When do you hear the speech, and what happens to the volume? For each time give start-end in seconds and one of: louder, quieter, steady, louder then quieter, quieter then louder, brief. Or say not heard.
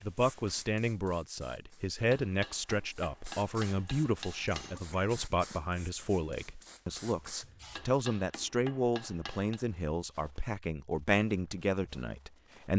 0.0-12.7 steady.